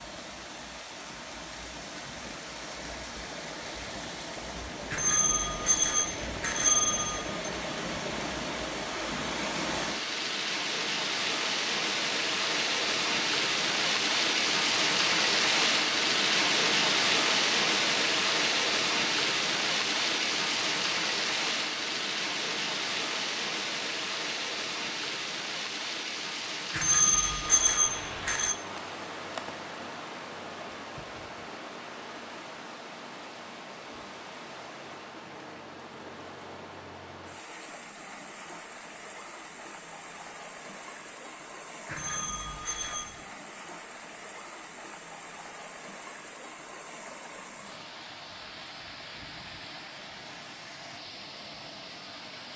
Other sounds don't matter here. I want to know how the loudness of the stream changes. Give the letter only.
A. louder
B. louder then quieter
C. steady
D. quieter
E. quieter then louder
B.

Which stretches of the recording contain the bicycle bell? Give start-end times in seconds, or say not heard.
4.9-7.2, 26.7-28.6, 41.9-43.1.